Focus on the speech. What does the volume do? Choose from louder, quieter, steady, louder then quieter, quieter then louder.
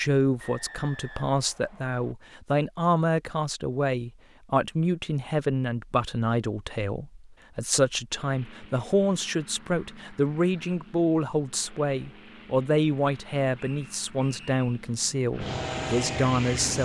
steady.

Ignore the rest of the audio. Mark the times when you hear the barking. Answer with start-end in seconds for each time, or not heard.
not heard.